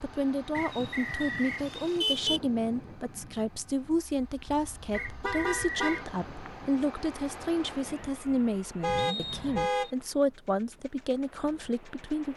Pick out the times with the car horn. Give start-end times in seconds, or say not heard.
0.6-2.4, 5.0-6.1, 8.8-9.9.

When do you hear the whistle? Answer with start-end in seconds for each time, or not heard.
0.5-1.6, 4.9-6.0, 8.9-9.9.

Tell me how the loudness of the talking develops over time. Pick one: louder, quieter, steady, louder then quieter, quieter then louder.
steady.